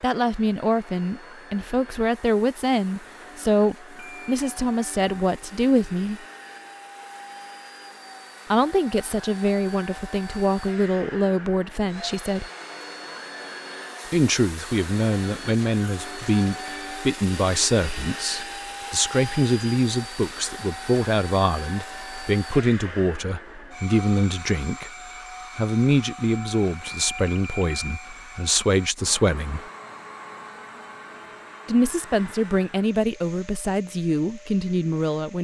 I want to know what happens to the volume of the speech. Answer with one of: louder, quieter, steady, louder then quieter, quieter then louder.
steady.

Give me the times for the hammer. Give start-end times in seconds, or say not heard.
not heard.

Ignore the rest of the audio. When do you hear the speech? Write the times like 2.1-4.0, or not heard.
0.0-6.2, 8.5-12.5, 14.1-24.9, 25.6-29.6, 31.6-35.4.